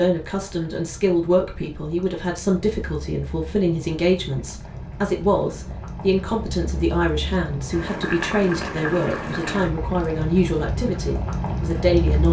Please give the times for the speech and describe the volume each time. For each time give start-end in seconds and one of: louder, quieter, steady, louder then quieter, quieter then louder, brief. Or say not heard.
0.0-12.2 steady.